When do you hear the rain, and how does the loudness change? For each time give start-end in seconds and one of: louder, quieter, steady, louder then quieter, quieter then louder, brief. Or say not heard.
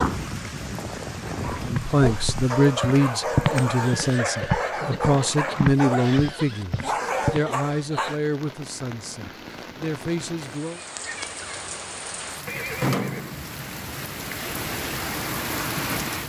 0.0-16.2 quieter then louder.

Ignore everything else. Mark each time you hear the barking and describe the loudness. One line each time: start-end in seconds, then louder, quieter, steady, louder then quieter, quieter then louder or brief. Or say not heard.
1.4-8.2 steady.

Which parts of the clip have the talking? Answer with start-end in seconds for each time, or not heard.
1.6-10.8.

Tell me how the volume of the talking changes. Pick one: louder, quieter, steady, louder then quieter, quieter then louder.
quieter.